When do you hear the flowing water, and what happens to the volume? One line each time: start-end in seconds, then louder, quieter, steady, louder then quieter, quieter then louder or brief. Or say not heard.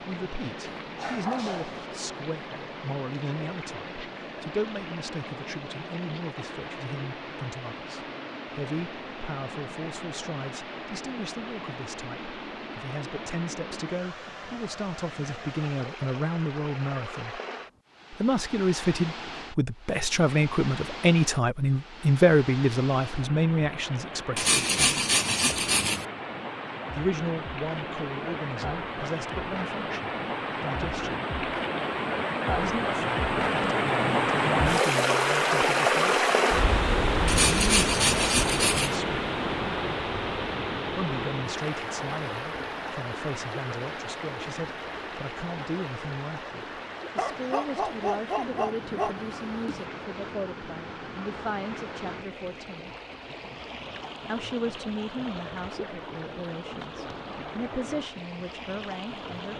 0.0-59.5 louder then quieter.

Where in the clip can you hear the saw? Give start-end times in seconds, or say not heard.
24.4-26.1, 37.2-39.0.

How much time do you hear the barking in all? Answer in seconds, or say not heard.
4 s.